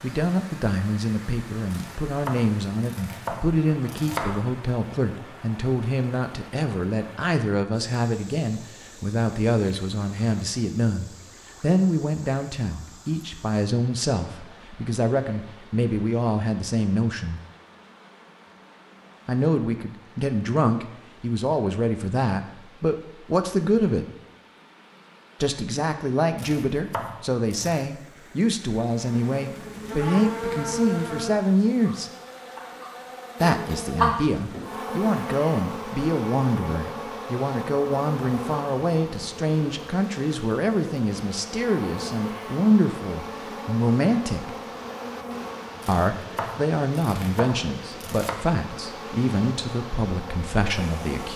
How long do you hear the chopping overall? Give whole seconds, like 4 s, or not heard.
7 s.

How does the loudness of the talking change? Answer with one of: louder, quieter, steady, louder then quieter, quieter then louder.
steady.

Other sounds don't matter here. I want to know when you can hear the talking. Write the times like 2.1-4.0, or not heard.
0.0-17.4, 19.2-24.1, 25.4-32.1, 33.4-44.5, 45.9-51.3.